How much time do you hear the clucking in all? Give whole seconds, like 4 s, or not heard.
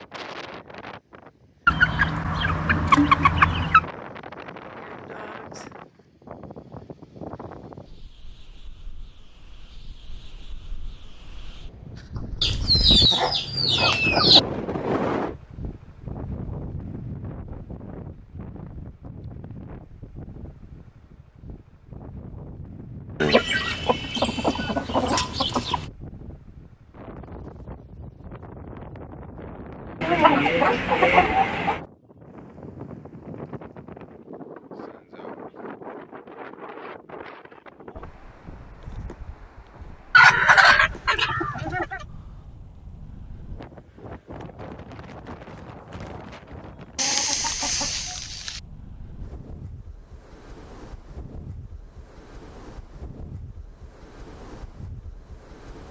12 s.